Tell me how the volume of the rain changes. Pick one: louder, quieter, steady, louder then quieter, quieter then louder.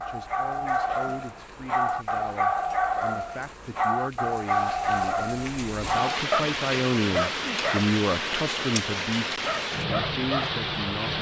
louder.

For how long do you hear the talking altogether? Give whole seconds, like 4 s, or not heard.
11 s.